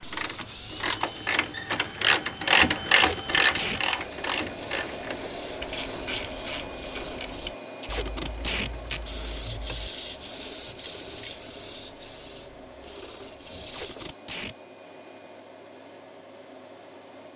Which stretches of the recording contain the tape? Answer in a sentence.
The tape can be heard from 2.9 to 3.8 s, from 7.8 to 9.0 s and from 13.6 to 14.6 s.